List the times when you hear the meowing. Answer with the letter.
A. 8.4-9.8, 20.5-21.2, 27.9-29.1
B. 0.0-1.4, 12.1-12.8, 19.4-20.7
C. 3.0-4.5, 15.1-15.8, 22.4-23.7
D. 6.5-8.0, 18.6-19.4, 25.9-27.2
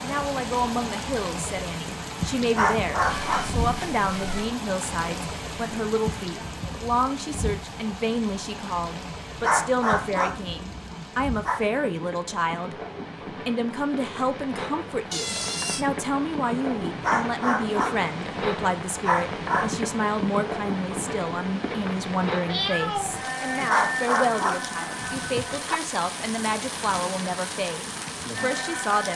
C.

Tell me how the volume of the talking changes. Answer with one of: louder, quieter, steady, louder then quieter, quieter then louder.
steady.